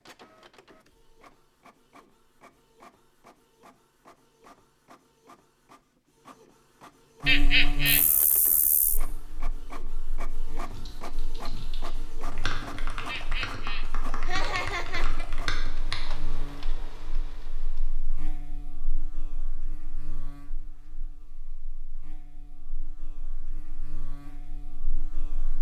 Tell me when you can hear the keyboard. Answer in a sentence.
You can hear the keyboard from 10.7 to 16.0 s.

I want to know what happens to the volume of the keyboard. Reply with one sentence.
The volume of the keyboard goes up.